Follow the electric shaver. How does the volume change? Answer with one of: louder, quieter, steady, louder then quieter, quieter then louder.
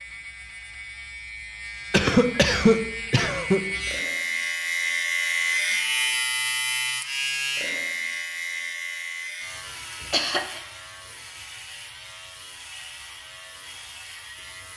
louder then quieter.